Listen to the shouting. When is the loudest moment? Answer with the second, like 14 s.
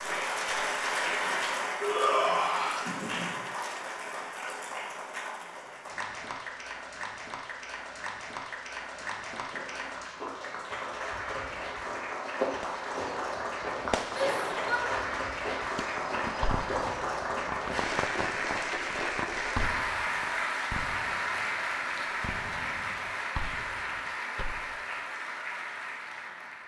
2 s.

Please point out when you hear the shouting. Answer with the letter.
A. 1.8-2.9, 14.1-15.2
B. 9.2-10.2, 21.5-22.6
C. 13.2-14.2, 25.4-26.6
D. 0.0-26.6
A.